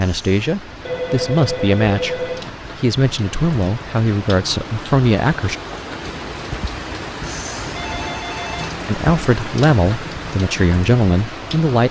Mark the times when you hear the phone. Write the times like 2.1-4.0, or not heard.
0.8-2.5, 7.8-8.7.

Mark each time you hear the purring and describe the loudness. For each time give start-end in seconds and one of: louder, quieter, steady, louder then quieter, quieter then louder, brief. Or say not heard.
not heard.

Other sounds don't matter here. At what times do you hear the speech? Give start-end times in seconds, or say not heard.
0.0-5.5, 8.8-11.8.